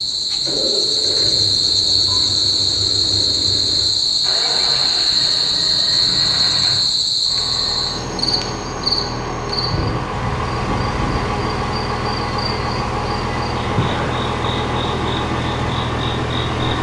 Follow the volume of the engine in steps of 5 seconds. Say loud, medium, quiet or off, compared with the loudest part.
medium, medium, loud, loud.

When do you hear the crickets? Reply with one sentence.
The crickets can be heard from 0.0 to 16.7 s.